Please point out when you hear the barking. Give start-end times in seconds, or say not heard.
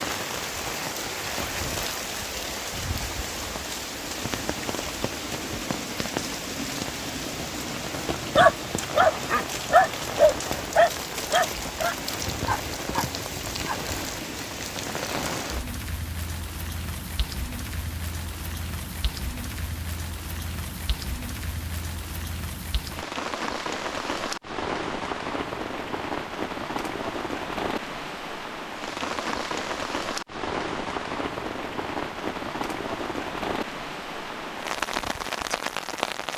8.3-13.8.